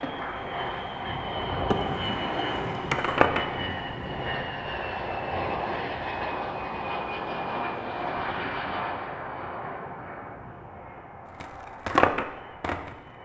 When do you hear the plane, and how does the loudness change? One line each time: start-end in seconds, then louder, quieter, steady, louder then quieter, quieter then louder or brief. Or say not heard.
0.0-13.2 quieter.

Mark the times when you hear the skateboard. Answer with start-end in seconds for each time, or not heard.
0.0-3.5, 11.4-12.9.